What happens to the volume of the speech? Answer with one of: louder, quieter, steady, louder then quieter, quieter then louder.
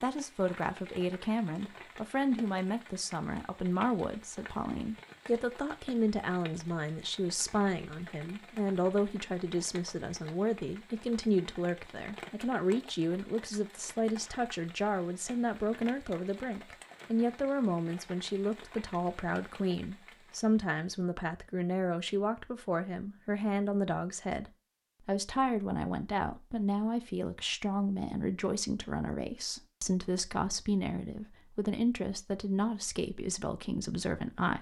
steady.